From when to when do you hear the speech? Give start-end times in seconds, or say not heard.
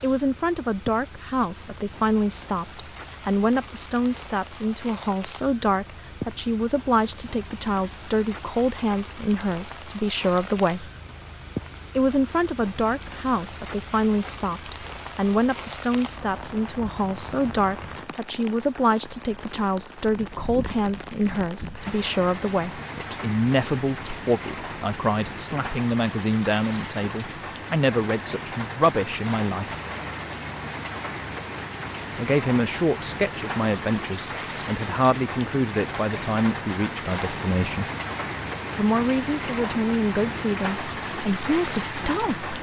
0.0-10.9, 11.9-29.8, 32.1-37.9, 38.8-42.5.